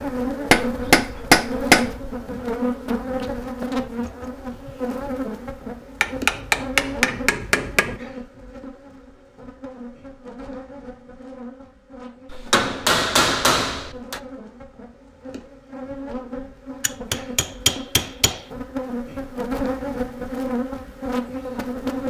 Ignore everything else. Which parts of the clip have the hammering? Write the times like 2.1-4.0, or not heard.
0.5-1.9, 6.0-8.0, 12.3-14.2, 16.8-18.4.